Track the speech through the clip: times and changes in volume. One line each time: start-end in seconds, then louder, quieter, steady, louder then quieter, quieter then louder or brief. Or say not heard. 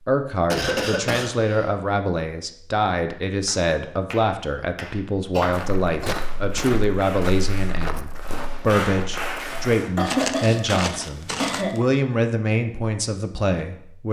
0.1-14.0 steady.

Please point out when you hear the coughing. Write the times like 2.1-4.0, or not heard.
0.5-1.7, 5.3-6.4, 9.8-11.8.